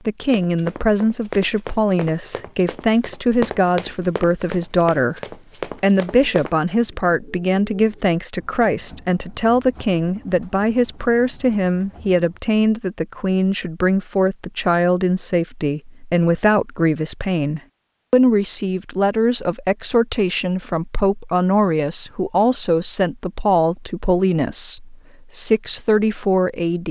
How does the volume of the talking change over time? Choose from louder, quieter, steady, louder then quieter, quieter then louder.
steady.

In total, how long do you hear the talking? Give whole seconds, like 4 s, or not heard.
27 s.